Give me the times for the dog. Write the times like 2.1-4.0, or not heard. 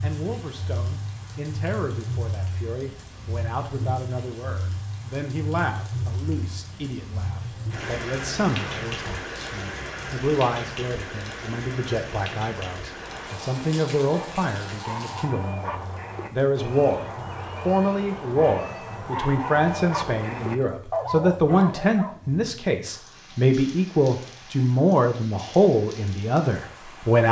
12.8-22.1.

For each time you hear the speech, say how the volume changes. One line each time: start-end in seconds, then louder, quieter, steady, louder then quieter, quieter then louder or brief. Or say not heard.
0.0-27.2 louder.